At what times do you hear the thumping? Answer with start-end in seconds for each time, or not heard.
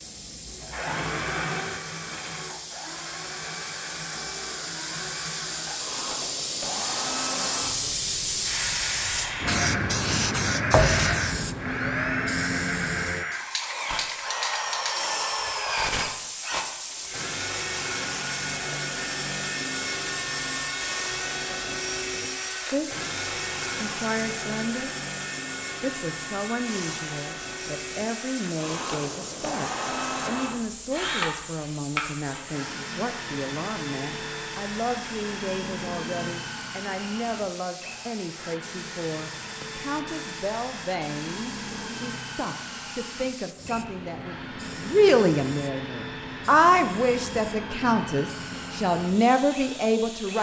10.7-11.3.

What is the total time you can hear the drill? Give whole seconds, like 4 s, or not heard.
50 s.